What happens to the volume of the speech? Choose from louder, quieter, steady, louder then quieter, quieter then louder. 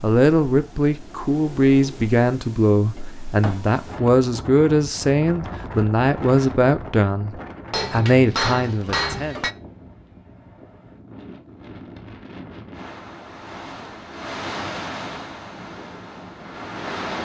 steady.